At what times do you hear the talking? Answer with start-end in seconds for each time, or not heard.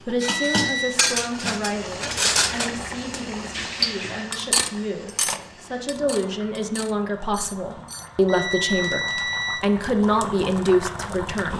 0.0-11.5.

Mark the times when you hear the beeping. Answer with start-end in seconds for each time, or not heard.
0.2-0.9, 8.2-9.7.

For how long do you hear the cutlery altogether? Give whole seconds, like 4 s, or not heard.
8 s.